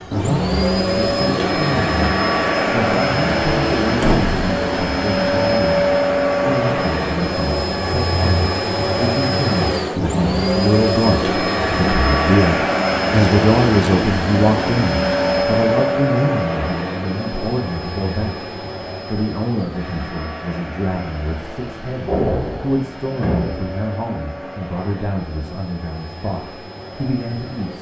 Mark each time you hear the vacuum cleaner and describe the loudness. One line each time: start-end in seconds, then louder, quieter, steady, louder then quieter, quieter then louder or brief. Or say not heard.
0.0-27.7 quieter.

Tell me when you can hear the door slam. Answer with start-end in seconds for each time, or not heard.
4.0-4.4, 22.1-23.8.